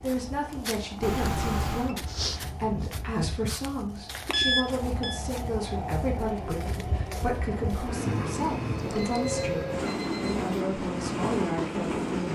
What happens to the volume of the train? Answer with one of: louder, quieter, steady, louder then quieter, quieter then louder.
louder.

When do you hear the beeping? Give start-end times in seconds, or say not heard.
1.0-1.9, 4.2-5.2, 8.8-10.6.